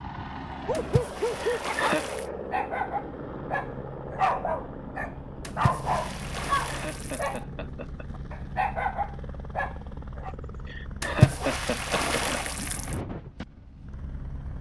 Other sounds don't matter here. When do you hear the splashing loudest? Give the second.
11 s.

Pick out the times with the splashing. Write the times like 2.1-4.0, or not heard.
0.7-2.2, 5.4-7.4, 11.0-12.9.